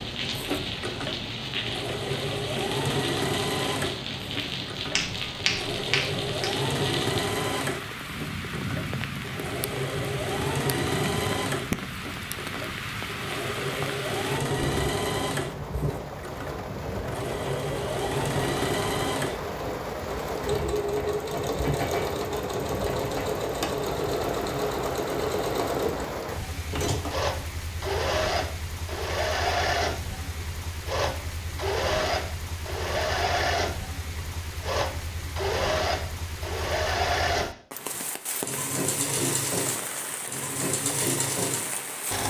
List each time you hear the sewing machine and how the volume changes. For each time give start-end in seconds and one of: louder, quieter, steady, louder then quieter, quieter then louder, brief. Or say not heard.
0.0-42.2 steady.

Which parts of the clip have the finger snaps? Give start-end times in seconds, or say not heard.
5.0-6.5.